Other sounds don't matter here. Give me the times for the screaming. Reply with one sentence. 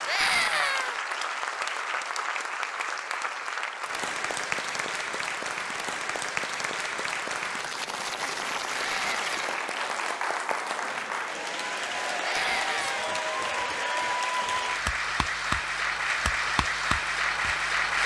The screaming can be heard from 0.1 to 1.0 s, from 8.8 to 9.4 s and from 12.2 to 13.1 s.